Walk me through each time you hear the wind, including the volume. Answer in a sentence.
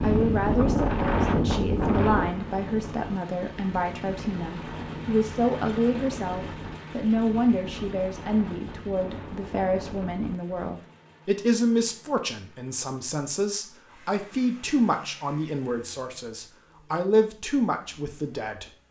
The wind can be heard from 0.0 to 10.6 s, getting quieter.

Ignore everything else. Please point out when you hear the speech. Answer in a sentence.
The speech can be heard from 0.0 to 18.6 s.